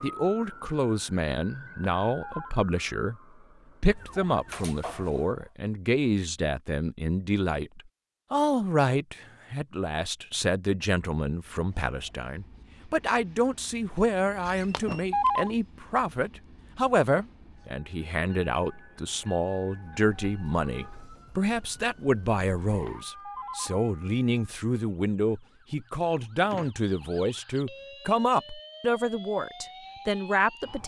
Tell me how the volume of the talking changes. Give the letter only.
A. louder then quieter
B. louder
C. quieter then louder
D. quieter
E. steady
E.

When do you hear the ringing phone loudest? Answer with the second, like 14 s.
15 s.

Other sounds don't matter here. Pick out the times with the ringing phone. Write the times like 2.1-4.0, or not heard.
1.6-2.5, 14.4-15.5, 22.6-23.9.